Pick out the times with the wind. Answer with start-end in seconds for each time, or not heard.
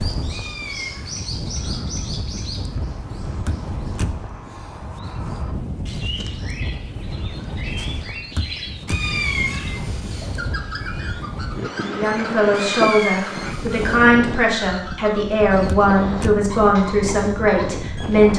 0.0-18.3.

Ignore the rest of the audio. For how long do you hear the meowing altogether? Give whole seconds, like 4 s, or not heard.
4 s.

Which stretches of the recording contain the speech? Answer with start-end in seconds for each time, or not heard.
11.8-18.3.